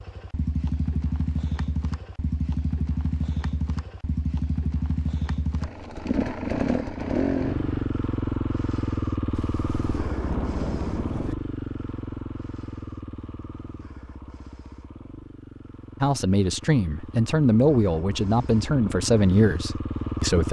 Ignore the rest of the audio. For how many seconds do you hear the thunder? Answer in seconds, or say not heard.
2 s.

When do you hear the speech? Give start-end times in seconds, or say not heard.
16.0-20.4.